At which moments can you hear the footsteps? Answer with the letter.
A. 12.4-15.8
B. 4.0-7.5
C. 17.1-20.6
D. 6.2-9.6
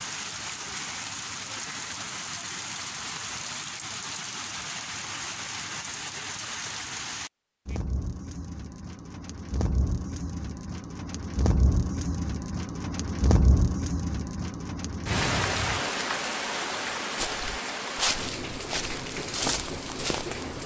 C.